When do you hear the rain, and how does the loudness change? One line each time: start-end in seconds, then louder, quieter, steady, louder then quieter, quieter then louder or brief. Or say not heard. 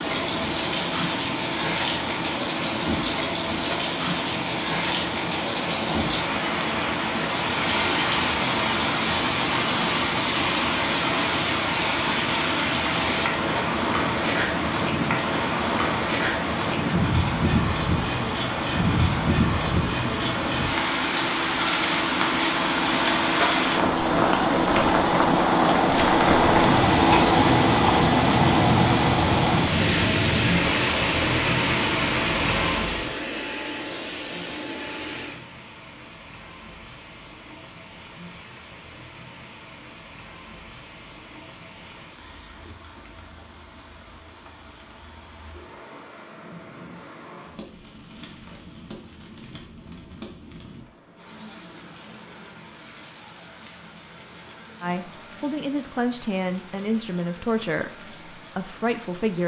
0.0-59.4 quieter.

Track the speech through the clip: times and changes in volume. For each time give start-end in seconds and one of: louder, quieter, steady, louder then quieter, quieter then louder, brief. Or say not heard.
54.8-59.4 steady.